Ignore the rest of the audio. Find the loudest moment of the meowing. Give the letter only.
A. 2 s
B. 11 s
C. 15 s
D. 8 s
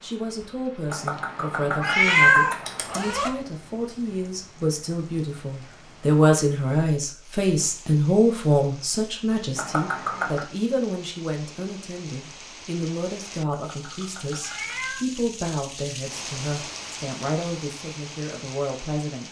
A.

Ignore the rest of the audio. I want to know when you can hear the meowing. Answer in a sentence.
You can hear the meowing from 0.9 to 3.0 s, from 9.6 to 10.4 s and from 13.5 to 15.1 s.